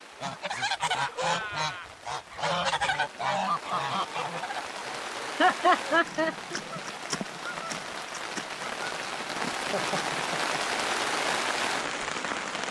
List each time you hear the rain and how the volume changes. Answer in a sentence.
You can hear the rain from 0.0 to 12.6 s, getting louder.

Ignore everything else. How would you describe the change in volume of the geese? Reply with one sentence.
The loudness of the geese goes down.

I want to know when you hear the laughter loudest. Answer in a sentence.
The loudest moment of the laughter is at 6 seconds.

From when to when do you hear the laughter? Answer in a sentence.
You can hear the laughter from 0.8 to 1.9 s, from 5.3 to 6.5 s and from 9.7 to 10.8 s.